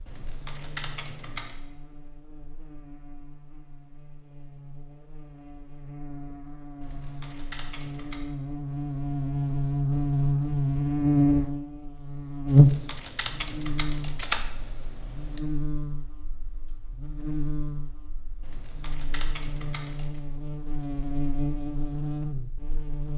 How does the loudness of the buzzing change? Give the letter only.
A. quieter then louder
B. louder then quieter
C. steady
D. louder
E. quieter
B.